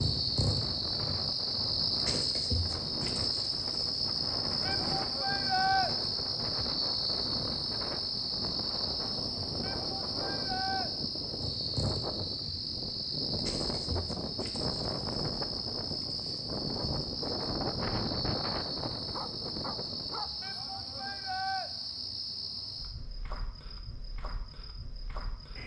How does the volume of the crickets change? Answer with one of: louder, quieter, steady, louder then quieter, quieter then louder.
quieter.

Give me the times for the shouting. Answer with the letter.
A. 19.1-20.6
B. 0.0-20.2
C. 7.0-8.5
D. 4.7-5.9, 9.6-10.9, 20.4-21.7
D.